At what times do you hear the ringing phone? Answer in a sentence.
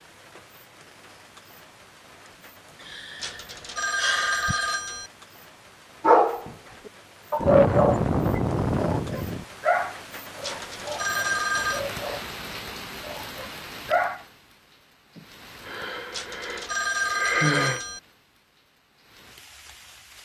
The ringing phone can be heard from 3.2 to 5.1 s, from 10.4 to 11.8 s and from 16.1 to 18.0 s.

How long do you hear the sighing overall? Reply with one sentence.
You can hear the sighing for 7 seconds altogether.